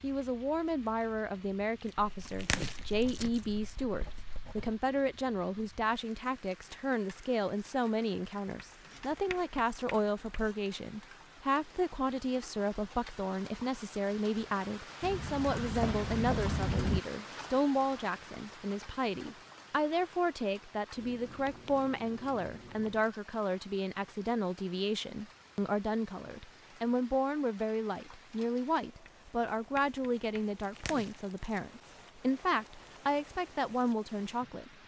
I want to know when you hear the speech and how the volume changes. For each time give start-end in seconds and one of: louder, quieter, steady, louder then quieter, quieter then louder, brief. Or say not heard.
0.0-34.7 steady.